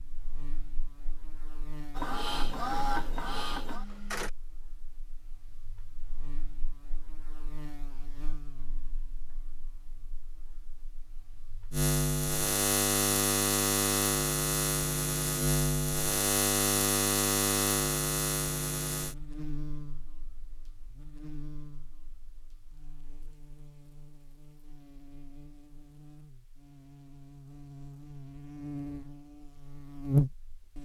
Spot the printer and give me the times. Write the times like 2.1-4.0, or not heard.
1.9-4.3.